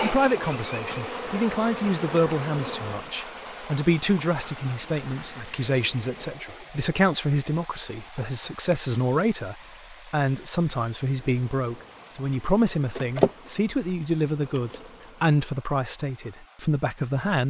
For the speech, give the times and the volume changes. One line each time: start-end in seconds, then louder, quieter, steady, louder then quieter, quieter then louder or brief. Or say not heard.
0.0-17.4 steady.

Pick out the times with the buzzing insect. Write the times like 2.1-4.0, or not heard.
0.0-6.3, 11.2-15.3.